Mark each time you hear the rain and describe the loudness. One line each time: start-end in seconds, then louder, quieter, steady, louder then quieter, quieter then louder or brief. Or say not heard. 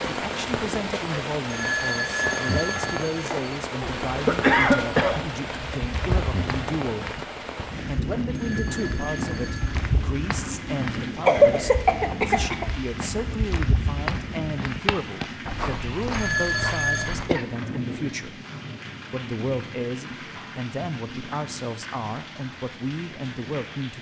0.0-23.9 quieter.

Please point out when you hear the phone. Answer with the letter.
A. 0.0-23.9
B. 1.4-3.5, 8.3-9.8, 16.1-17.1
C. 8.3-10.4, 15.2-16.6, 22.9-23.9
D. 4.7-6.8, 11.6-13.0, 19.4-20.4
B.